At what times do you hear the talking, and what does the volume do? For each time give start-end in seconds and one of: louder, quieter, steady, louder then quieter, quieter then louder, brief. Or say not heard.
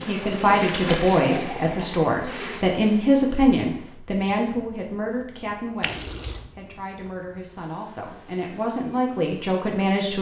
0.0-10.1 quieter then louder.